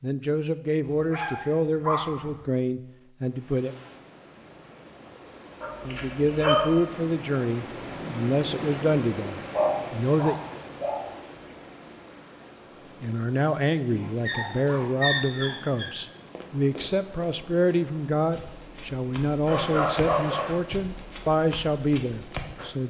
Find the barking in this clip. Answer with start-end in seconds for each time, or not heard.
0.8-2.4, 5.6-6.8, 9.5-11.1, 13.9-15.9, 19.4-20.6.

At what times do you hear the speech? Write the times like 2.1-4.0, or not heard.
0.0-3.8, 5.8-10.3, 13.0-22.8.